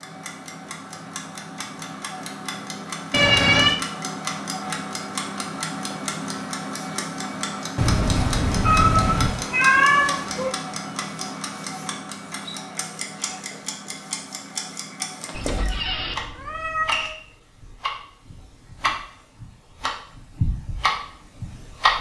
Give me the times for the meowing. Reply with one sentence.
You can hear the meowing from 3.1 to 3.8 s, from 7.8 to 10.5 s and from 15.3 to 17.1 s.